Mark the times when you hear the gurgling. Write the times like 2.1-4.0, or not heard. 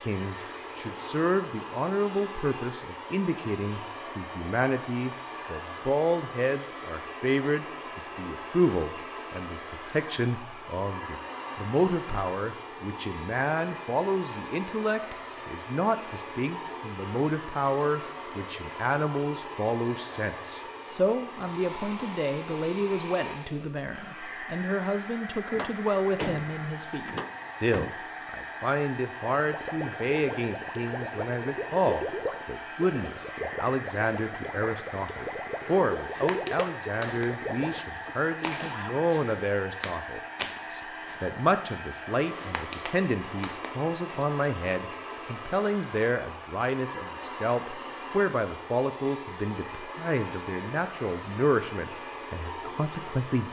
29.4-37.8.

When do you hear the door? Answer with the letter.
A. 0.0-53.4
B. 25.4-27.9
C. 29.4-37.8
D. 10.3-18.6
B.